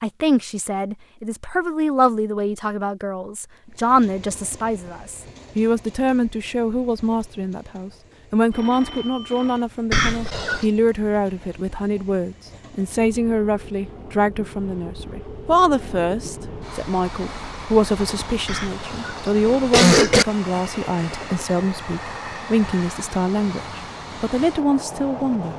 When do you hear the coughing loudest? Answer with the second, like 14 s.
20 s.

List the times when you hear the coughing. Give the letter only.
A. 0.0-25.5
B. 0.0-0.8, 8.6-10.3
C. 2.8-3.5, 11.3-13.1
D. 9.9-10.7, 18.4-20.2
D.